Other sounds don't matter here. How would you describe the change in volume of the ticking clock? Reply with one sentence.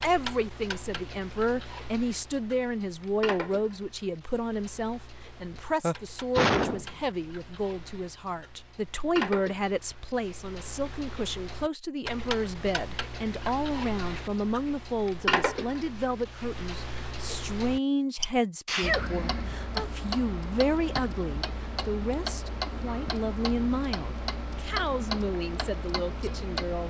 The volume of the ticking clock goes up.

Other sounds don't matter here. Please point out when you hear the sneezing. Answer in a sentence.
You can hear the sneezing from 5.5 to 6.8 s and from 18.6 to 19.9 s.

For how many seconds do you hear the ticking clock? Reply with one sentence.
You can hear the ticking clock for 27 seconds altogether.